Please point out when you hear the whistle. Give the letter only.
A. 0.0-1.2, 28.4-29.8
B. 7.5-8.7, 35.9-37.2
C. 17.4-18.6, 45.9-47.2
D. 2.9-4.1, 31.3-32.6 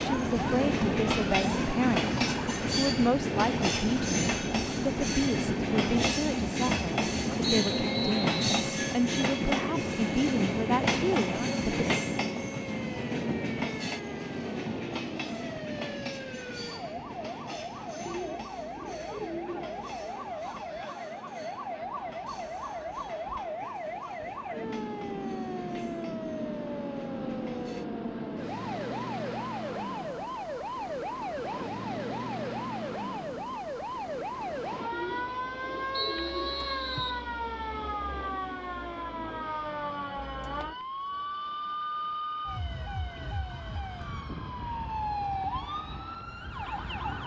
B.